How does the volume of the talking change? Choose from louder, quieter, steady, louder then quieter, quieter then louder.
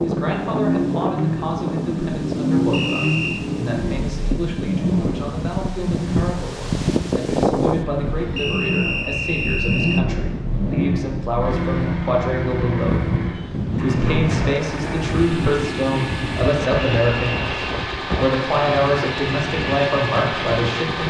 louder.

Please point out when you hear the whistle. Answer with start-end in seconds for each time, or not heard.
2.7-3.5, 8.3-10.1, 16.9-17.6.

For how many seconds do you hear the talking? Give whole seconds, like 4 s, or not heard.
21 s.